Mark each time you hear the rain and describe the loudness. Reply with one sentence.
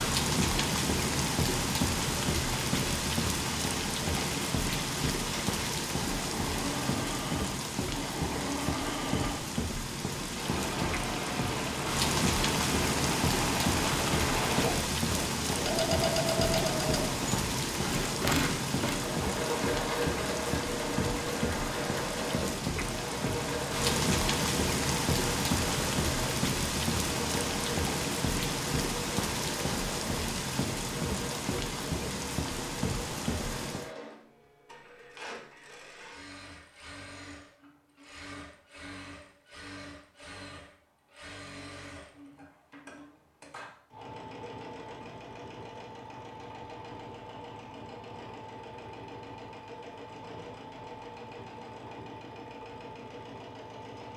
You can hear the rain from 0.0 to 33.9 s, at a steady volume.